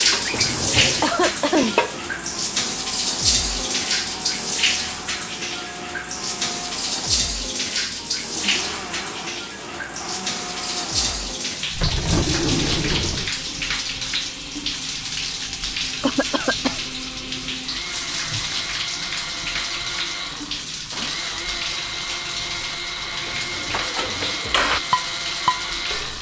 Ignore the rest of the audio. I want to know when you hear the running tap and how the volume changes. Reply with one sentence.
The running tap can be heard from 0.0 to 26.1 s, getting quieter.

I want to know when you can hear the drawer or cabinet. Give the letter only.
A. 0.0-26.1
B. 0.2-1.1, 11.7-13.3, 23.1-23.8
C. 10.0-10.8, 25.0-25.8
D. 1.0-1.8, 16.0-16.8
B.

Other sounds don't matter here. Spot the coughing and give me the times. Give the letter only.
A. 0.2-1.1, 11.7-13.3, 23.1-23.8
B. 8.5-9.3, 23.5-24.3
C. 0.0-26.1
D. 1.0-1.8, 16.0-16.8
D.